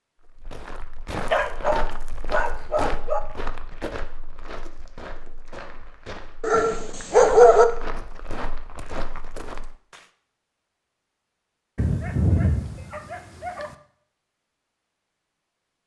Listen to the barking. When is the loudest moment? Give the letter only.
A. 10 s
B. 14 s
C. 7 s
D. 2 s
C.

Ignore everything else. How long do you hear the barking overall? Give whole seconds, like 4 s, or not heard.
5 s.